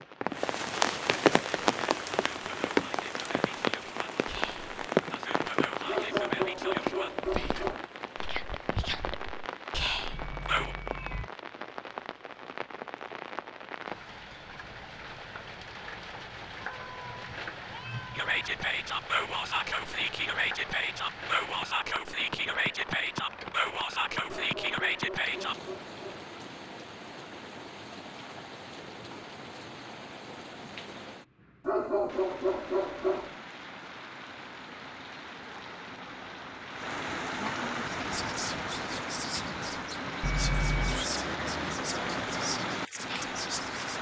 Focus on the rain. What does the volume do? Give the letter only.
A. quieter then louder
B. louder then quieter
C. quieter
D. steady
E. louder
A.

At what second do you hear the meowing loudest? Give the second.
41 s.